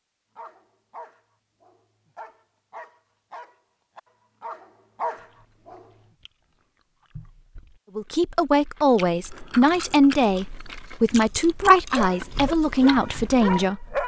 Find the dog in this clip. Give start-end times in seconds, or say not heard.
0.3-5.8, 11.9-14.0.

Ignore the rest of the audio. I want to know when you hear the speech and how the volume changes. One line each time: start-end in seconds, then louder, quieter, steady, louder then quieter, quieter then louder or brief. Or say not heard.
8.0-14.0 steady.